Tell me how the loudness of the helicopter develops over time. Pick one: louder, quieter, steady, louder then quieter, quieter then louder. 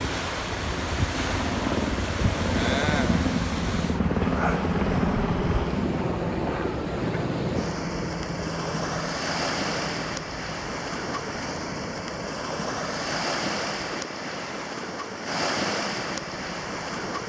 quieter.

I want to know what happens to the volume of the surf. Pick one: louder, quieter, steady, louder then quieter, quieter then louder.
steady.